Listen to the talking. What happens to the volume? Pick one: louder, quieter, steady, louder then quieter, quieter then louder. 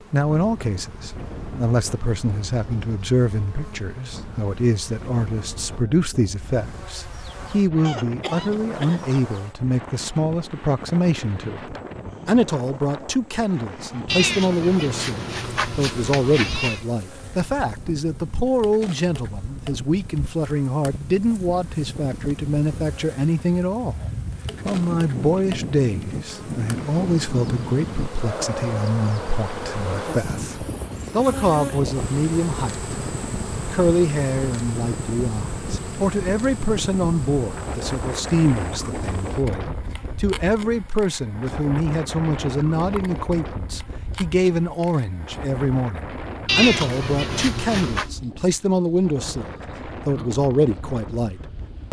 steady.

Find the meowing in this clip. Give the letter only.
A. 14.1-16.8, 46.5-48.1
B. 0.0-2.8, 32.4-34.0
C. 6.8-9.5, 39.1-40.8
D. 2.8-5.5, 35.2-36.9
A.